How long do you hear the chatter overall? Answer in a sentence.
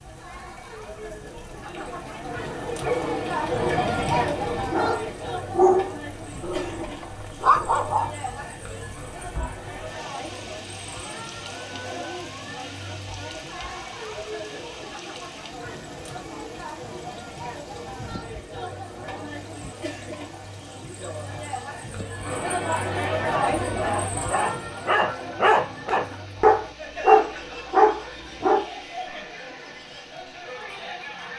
The chatter can be heard for 31 seconds in total.